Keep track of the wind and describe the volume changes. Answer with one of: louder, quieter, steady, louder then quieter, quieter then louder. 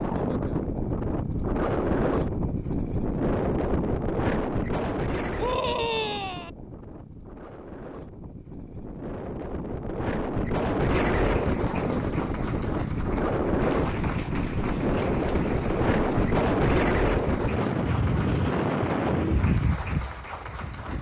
quieter then louder.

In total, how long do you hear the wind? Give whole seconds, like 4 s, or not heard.
21 s.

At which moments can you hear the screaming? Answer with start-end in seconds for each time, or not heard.
5.3-6.5.